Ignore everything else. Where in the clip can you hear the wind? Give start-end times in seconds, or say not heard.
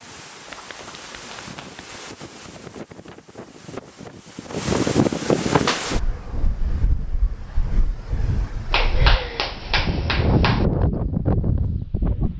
0.0-12.3.